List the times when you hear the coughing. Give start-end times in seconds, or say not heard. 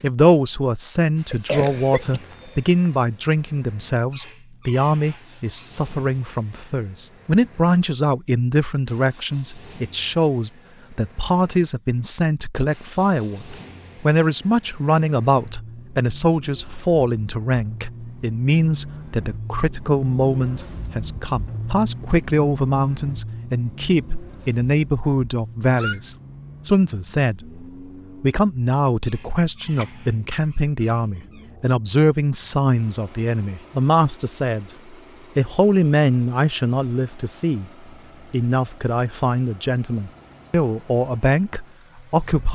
1.3-2.9, 29.8-30.6.